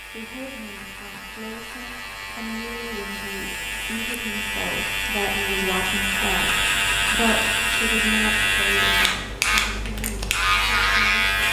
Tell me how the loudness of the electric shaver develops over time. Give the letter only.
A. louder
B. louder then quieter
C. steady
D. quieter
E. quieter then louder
A.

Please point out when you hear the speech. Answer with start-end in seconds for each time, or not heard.
0.0-11.4.